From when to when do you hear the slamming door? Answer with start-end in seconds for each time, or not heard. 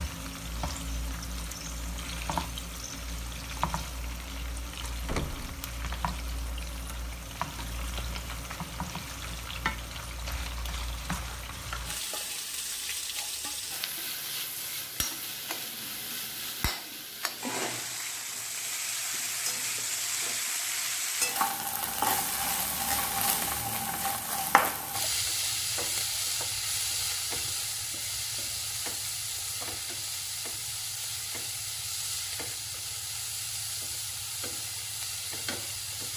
5.0-5.7.